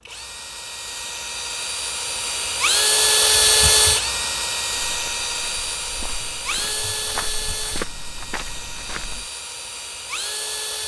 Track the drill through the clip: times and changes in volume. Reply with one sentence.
You can hear the drill from 0.0 to 10.8 s, getting louder then quieter.